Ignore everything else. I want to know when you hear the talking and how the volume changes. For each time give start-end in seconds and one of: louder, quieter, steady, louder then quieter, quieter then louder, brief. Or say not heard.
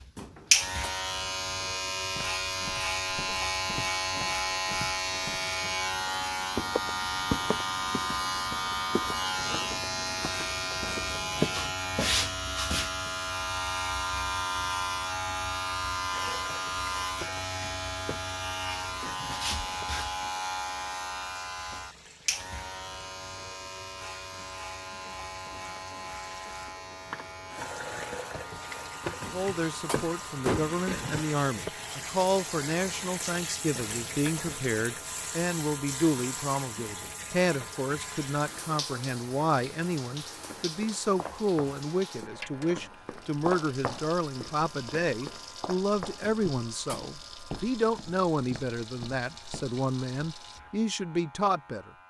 29.3-51.9 steady.